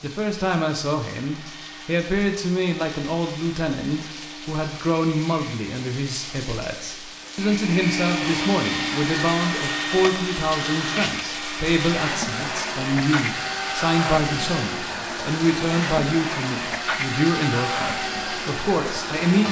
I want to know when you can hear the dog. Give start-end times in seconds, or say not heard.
not heard.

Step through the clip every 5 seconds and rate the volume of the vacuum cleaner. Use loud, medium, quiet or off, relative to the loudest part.
quiet, loud, loud, loud.